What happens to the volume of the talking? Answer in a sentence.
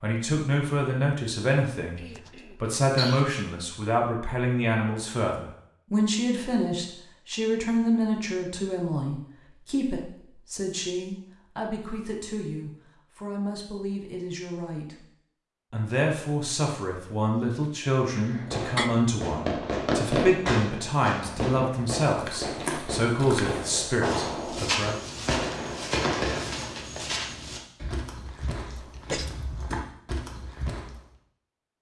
The volume of the talking goes down, then up.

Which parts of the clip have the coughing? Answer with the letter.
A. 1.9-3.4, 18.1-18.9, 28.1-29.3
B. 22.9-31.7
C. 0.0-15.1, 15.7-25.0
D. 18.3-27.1
A.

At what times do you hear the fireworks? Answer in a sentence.
The fireworks can be heard from 18.3 to 27.1 s.